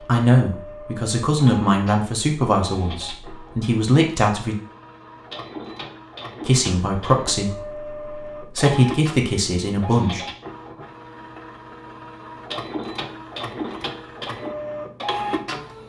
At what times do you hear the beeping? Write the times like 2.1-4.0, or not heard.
not heard.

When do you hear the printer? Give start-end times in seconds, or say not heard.
0.0-15.8.